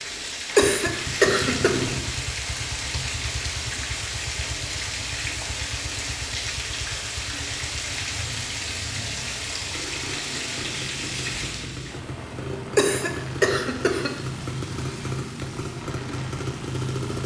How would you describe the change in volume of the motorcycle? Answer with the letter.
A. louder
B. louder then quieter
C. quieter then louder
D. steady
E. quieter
C.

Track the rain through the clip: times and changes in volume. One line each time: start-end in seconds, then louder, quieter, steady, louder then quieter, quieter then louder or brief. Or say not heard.
0.0-17.2 quieter.